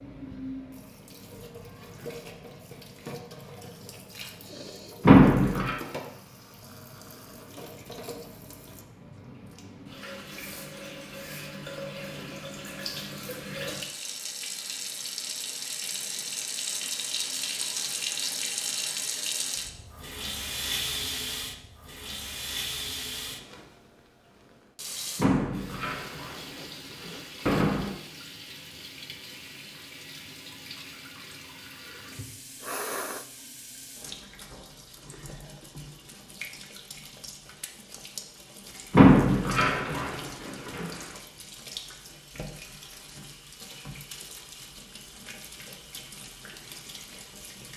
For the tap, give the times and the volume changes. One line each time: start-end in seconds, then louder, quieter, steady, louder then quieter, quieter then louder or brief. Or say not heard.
0.0-47.7 louder then quieter.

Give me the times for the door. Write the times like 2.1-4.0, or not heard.
5.0-5.8, 25.1-27.9, 38.9-41.0.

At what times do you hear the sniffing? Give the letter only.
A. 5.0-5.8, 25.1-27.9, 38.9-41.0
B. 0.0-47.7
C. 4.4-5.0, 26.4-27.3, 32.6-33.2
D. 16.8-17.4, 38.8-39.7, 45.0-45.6
C.